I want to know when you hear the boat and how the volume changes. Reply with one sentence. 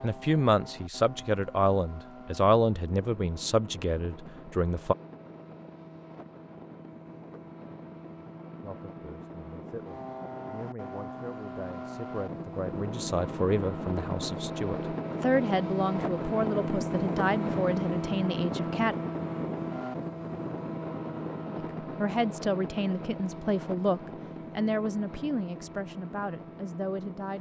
You can hear the boat from 0.0 to 27.3 s, getting louder then quieter.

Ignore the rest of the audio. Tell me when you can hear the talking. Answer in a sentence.
You can hear the talking from 0.0 to 5.0 s, from 8.6 to 18.9 s and from 21.8 to 27.3 s.